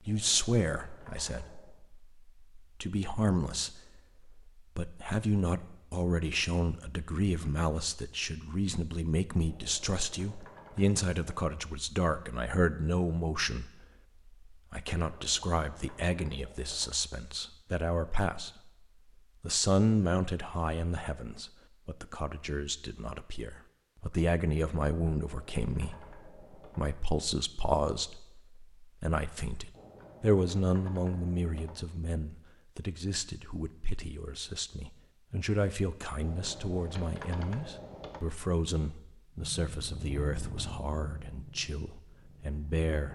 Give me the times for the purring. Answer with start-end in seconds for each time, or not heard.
39.3-43.1.